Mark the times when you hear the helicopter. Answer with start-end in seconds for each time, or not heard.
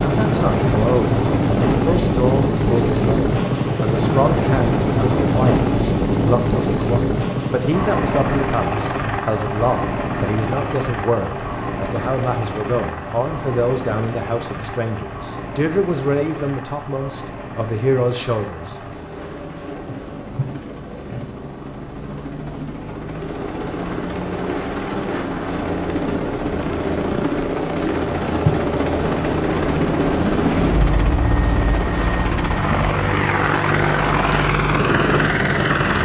0.0-36.0.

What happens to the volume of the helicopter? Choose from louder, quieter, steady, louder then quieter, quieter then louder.
quieter then louder.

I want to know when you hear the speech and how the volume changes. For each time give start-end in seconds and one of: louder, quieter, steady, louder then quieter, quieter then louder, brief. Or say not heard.
0.0-18.7 steady.